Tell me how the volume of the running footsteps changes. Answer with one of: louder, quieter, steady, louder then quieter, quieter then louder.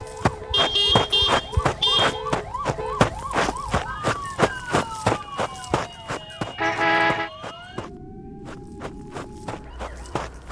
quieter.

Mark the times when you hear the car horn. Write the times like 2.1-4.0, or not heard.
0.5-2.2, 6.5-7.3.